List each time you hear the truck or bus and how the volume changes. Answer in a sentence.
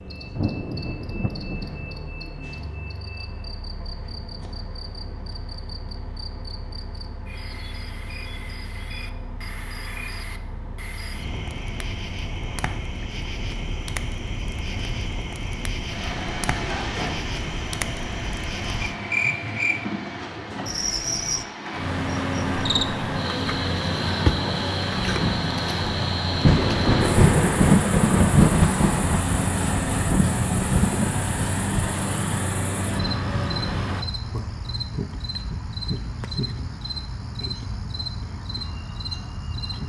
The truck or bus can be heard from 0.0 to 34.0 s, getting louder.